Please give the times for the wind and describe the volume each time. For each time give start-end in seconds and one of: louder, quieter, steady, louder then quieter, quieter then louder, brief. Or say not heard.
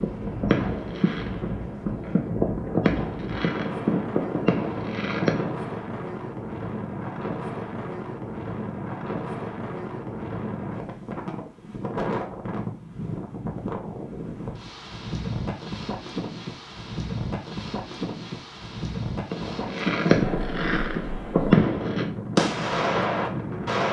0.0-23.8 steady.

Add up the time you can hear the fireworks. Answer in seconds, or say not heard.
10 s.